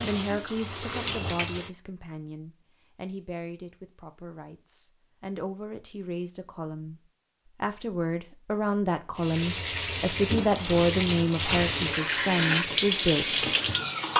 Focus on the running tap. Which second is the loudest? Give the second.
13 s.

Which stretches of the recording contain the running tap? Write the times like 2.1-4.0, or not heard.
0.0-1.7, 9.2-14.1.